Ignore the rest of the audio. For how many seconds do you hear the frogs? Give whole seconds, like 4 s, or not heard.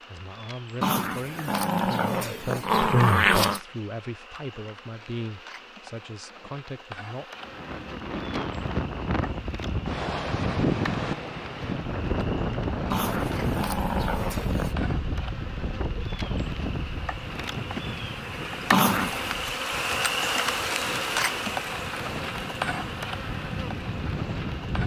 not heard.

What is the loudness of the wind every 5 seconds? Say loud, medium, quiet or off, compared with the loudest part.
off, loud, loud, medium, medium.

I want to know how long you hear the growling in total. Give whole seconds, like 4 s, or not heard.
5 s.